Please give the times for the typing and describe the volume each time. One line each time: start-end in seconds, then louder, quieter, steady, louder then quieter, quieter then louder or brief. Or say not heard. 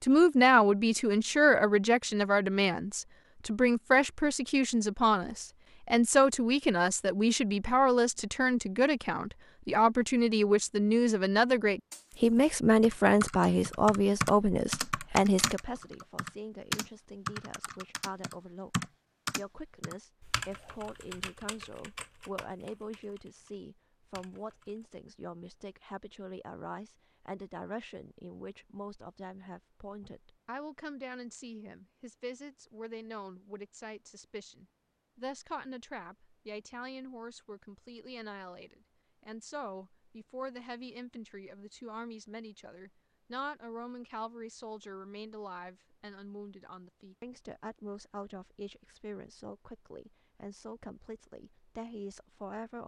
12.8-24.9 quieter.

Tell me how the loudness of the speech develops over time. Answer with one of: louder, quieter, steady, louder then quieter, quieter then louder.
quieter.